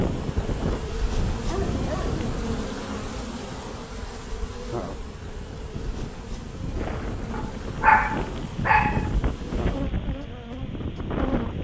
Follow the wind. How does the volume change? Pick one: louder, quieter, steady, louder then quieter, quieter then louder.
quieter then louder.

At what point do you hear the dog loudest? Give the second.
8 s.